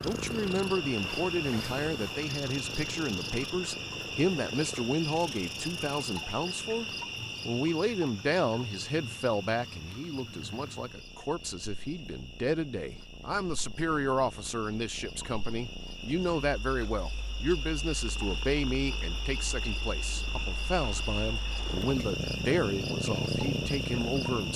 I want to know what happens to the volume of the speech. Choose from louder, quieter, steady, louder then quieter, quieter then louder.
steady.